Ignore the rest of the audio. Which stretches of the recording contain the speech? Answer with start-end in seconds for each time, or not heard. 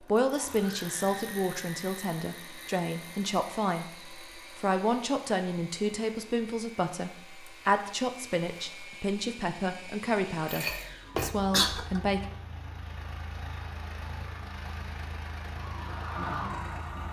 0.0-12.2.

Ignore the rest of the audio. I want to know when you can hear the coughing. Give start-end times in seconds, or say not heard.
10.4-12.0.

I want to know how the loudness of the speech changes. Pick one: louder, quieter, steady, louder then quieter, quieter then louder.
steady.